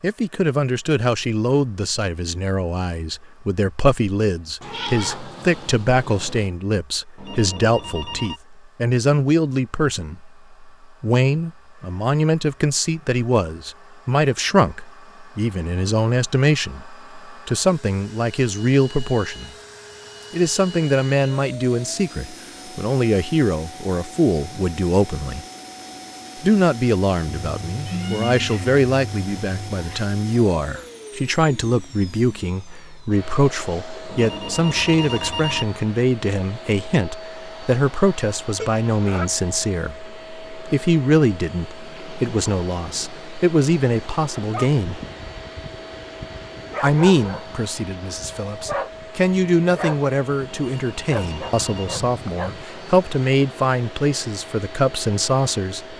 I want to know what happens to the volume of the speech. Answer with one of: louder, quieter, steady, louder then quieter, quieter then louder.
steady.